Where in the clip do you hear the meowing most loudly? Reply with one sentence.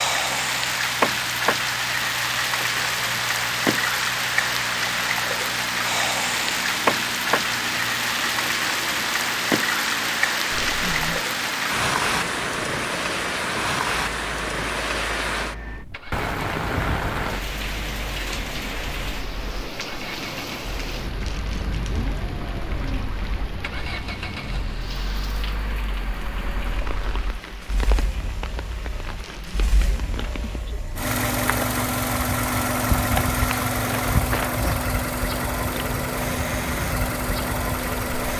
The loudest moment of the meowing is at 11 seconds.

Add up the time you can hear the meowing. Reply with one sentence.
The meowing can be heard for 4 seconds in total.